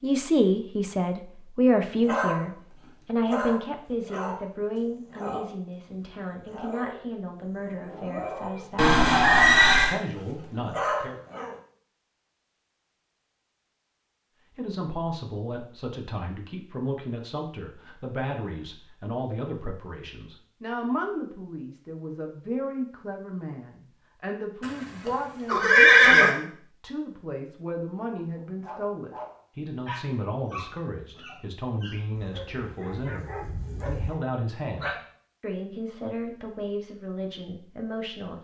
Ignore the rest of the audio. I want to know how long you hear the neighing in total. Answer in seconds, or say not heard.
3 s.